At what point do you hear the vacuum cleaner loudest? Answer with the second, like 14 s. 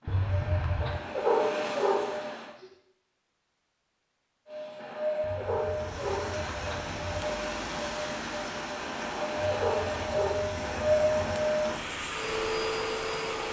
11 s.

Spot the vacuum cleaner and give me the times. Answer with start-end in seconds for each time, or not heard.
0.0-2.5, 4.5-13.4.